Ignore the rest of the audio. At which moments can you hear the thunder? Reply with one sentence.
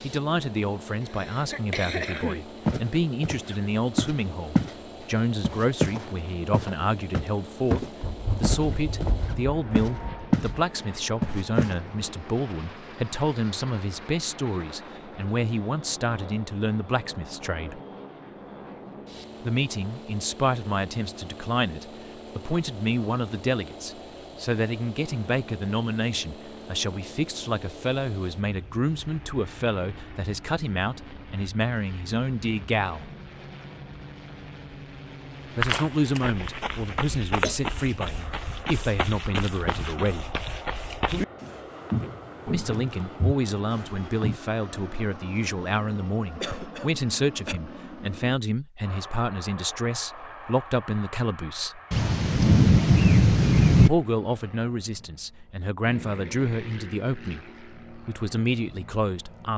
The thunder can be heard from 8.0 to 10.4 s and from 51.9 to 53.9 s.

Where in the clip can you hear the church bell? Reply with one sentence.
You can't hear the church bell here.